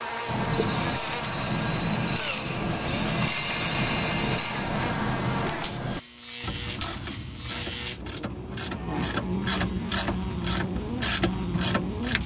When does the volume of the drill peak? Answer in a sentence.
The loudest moment of the drill is at 4 seconds.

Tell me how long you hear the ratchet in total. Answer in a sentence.
The ratchet can be heard for 12 seconds in total.